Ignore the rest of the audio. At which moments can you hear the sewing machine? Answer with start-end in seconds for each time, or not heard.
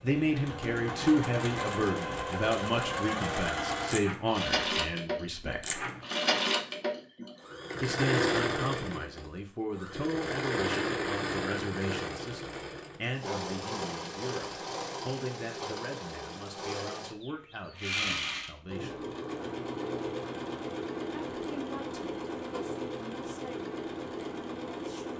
0.0-25.1.